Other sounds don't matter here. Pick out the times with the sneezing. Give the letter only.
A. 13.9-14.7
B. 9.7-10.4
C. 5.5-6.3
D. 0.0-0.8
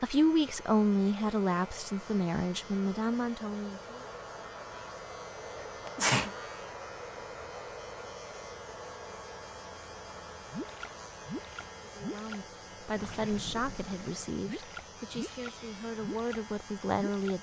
C.